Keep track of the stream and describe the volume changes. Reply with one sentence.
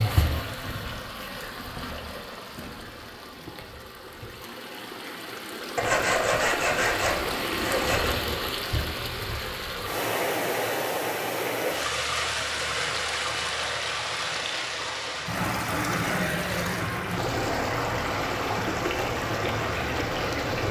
The loudness of the stream goes up.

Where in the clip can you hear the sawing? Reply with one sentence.
You can hear the sawing from 5.8 to 8.3 s.